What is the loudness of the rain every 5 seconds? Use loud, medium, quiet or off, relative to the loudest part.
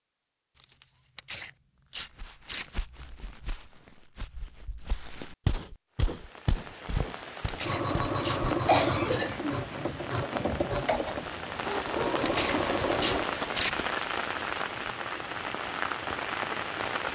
off, medium, loud, loud.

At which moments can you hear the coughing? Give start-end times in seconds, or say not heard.
8.7-9.6.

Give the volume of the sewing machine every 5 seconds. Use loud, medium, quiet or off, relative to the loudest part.
off, loud, loud, quiet.